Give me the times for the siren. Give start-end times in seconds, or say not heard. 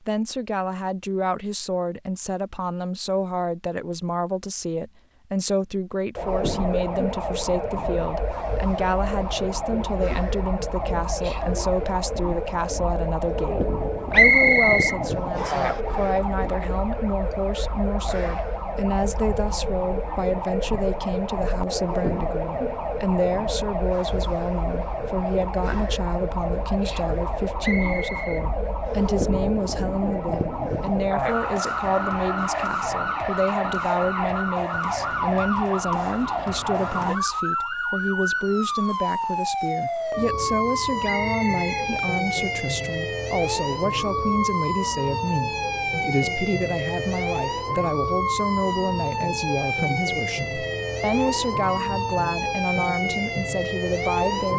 6.2-54.5.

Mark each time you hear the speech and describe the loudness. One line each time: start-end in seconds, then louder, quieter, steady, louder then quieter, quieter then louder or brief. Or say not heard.
0.0-54.5 steady.